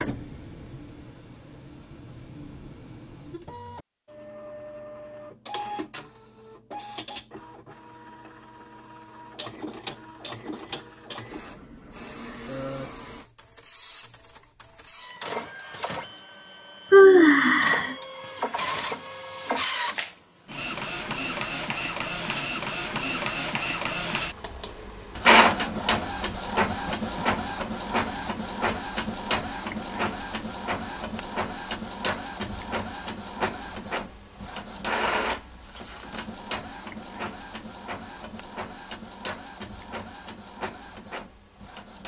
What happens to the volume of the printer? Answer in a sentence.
The volume of the printer goes up, then down.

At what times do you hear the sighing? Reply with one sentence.
The sighing can be heard from 16.9 to 17.9 s.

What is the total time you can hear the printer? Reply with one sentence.
You can hear the printer for 42 seconds altogether.